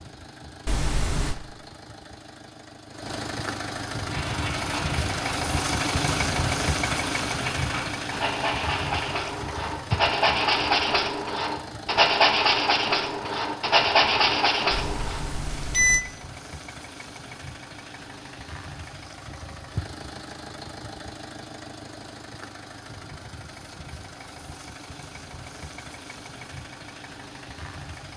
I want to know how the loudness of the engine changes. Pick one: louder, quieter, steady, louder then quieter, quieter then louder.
quieter.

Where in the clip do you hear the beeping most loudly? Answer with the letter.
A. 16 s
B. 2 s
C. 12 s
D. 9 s
A.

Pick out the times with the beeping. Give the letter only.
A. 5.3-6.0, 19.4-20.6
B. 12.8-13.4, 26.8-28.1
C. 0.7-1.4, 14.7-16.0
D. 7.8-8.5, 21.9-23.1
C.